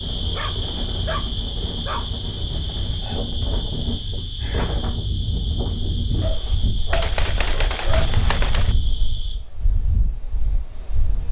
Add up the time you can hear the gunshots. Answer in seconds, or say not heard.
2 s.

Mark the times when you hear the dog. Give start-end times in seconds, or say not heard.
0.3-2.2, 6.2-8.1.